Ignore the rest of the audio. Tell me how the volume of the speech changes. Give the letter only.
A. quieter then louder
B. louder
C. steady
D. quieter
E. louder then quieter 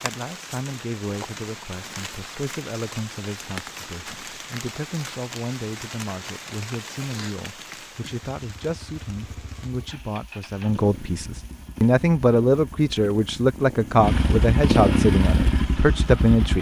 B.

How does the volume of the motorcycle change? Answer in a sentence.
The loudness of the motorcycle goes up.